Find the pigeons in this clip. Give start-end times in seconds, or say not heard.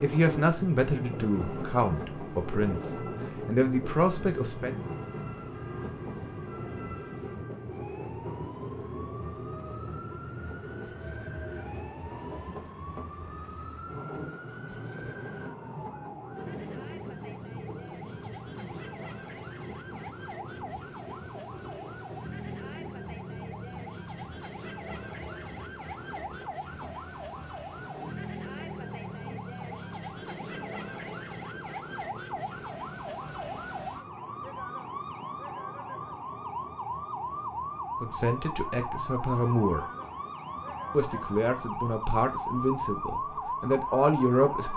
not heard.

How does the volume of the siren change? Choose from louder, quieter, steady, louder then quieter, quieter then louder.
louder.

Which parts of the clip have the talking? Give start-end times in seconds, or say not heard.
0.0-4.8, 38.0-39.9, 40.9-44.7.